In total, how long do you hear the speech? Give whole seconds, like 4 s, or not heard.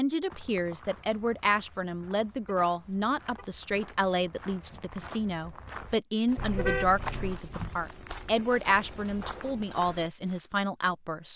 11 s.